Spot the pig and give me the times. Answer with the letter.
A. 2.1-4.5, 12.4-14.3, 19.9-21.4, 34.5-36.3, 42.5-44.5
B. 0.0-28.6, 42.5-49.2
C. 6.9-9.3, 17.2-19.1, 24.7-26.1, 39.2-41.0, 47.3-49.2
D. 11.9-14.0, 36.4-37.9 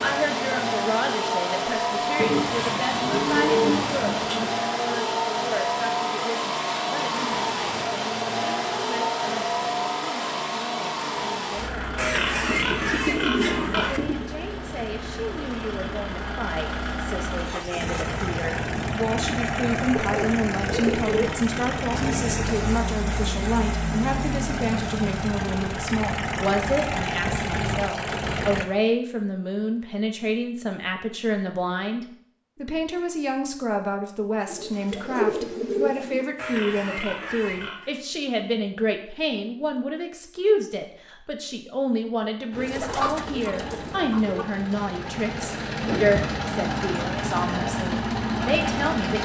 D.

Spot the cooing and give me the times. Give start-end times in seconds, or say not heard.
2.1-4.5, 12.4-14.3, 19.9-21.4, 34.5-36.3, 42.5-44.5.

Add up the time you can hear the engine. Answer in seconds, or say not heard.
35 s.